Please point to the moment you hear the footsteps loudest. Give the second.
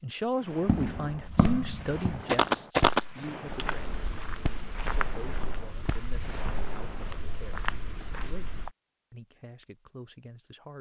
3 s.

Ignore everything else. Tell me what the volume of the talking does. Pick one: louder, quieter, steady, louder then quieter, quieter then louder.
quieter.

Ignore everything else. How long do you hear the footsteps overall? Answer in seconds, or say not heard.
8 s.